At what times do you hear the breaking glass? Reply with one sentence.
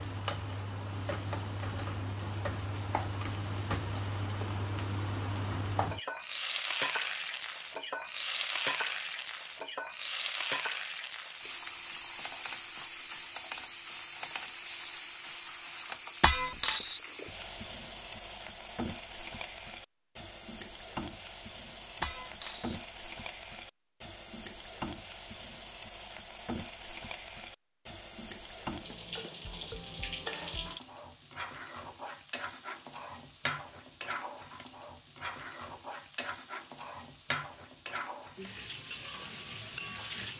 You can hear the breaking glass from 16.2 to 17.0 s and from 22.0 to 22.8 s.